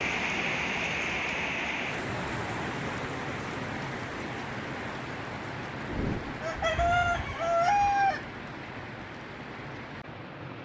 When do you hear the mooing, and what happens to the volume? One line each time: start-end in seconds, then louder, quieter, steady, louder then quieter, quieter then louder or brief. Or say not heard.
not heard.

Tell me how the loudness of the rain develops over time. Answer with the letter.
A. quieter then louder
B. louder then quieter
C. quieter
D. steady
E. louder
C.